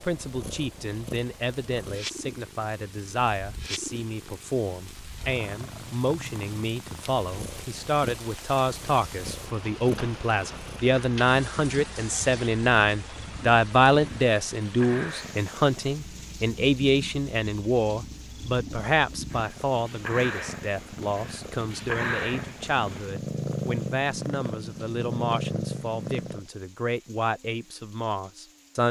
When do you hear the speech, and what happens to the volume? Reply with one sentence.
You can hear the speech from 0.0 to 28.8 s, getting louder then quieter.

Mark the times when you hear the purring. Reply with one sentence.
You can hear the purring from 0.0 to 26.4 s.